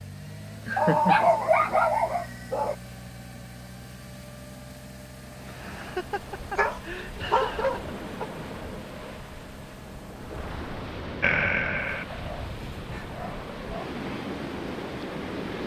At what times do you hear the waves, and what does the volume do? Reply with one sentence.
You can hear the waves from 5.2 to 15.6 s, getting louder.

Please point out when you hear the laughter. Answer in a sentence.
The laughter can be heard from 0.7 to 1.3 s, from 5.5 to 7.8 s and from 11.2 to 12.1 s.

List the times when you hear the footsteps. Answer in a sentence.
The footsteps can't be heard in this clip.